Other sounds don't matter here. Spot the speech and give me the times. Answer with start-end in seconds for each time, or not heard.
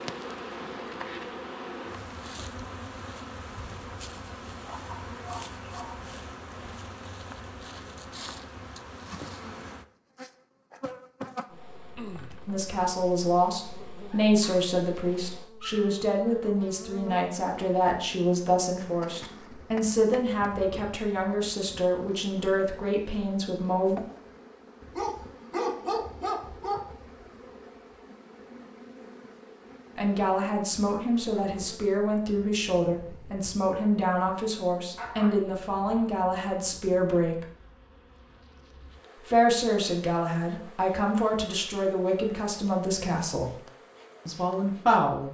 12.4-24.0, 29.9-37.5, 39.2-43.6, 44.2-45.3.